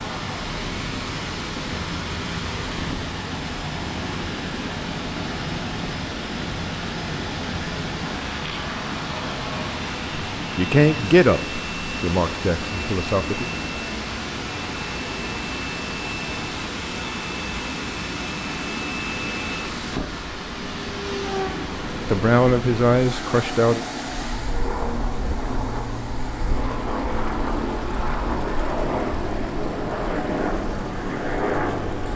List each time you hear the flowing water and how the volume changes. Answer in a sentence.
You can hear the flowing water from 0.0 to 32.1 s, getting quieter.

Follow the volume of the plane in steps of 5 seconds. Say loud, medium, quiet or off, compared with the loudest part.
medium, medium, medium, medium, medium, loud, loud.